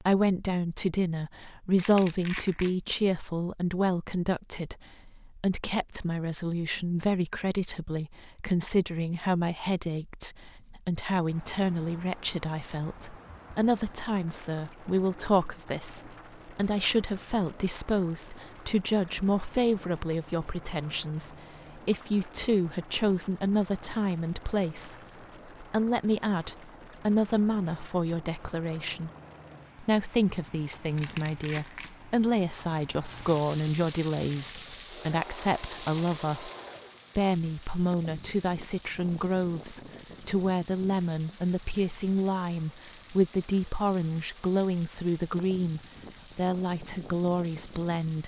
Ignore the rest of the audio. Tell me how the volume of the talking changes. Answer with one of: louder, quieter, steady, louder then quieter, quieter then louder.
steady.